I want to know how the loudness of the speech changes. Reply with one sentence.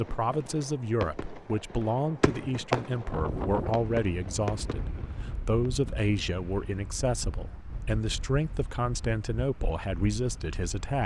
The loudness of the speech stays about the same.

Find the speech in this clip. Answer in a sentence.
The speech can be heard from 0.0 to 11.0 s.